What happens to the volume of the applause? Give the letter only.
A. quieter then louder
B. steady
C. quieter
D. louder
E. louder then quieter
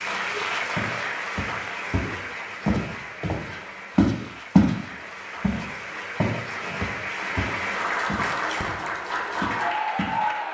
A.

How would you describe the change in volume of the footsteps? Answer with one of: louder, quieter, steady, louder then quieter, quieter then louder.
louder then quieter.